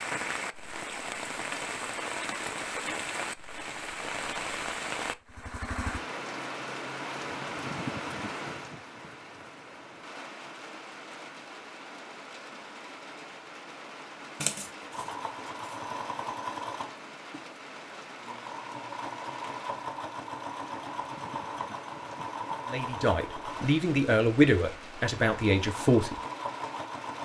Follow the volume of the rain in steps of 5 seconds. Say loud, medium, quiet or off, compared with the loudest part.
loud, loud, medium, medium, medium, medium.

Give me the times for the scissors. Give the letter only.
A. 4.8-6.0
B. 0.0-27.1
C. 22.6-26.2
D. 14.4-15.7
D.